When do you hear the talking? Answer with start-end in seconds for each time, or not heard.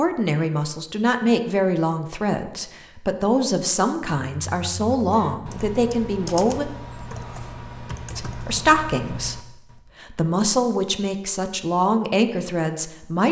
0.0-6.7, 8.2-13.2.